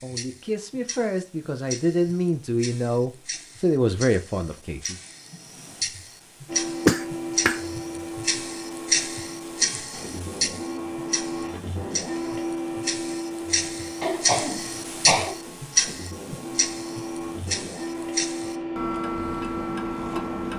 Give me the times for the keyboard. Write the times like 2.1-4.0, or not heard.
not heard.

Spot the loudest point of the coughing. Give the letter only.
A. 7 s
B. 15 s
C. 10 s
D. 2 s
A.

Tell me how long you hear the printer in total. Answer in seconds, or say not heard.
14 s.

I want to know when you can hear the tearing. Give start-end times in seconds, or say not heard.
not heard.